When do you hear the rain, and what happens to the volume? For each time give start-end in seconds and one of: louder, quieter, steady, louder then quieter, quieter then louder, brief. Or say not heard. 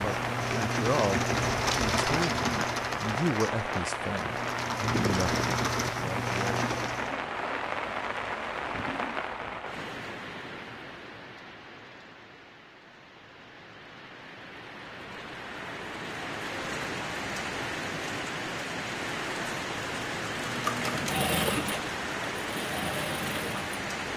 0.0-24.1 quieter then louder.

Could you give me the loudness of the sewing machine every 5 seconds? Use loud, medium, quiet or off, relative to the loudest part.
loud, loud, off, off, loud.